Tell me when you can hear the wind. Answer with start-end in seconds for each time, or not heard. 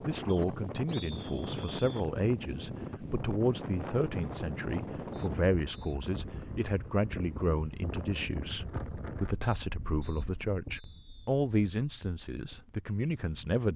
0.0-13.6.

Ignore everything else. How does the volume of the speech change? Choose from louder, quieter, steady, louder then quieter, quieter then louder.
steady.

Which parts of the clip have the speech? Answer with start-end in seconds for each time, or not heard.
0.0-13.7.